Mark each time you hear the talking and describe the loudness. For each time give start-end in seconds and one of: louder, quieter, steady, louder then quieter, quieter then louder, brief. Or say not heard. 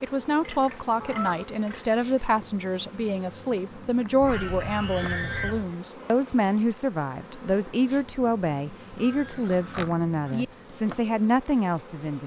0.0-12.2 steady.